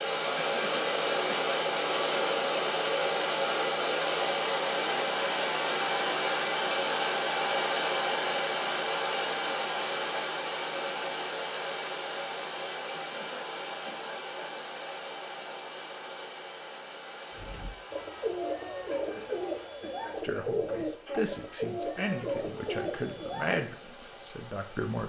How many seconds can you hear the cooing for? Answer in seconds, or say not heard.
6 s.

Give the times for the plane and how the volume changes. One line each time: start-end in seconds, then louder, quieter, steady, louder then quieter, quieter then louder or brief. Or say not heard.
0.0-25.0 quieter.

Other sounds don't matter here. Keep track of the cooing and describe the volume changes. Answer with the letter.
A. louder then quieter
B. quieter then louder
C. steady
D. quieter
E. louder
C.